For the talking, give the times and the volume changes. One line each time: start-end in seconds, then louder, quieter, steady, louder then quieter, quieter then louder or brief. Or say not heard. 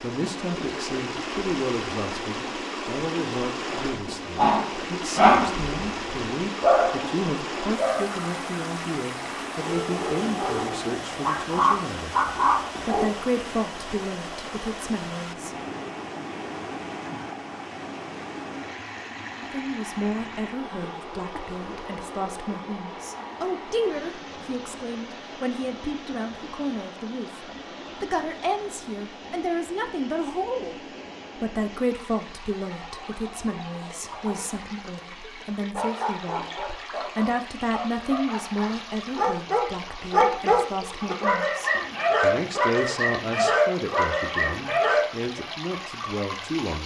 0.0-12.2 steady
12.8-15.6 brief
19.4-46.8 steady.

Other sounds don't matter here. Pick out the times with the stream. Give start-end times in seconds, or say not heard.
0.0-46.8.